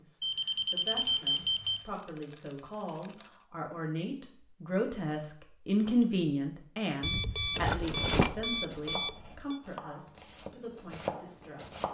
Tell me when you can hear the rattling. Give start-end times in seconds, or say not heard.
1.4-3.3, 7.5-8.3.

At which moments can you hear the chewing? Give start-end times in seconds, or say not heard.
not heard.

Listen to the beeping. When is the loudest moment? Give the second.
1 s.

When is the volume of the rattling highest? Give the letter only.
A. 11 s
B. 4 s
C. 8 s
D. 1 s
C.